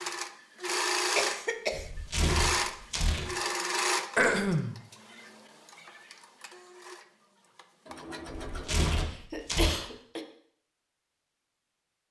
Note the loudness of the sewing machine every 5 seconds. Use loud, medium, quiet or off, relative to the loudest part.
loud, quiet, off.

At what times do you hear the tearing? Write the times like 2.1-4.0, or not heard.
1.7-3.2, 8.2-9.8.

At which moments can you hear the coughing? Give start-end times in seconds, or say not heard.
1.1-1.9, 4.2-4.8, 9.1-10.2.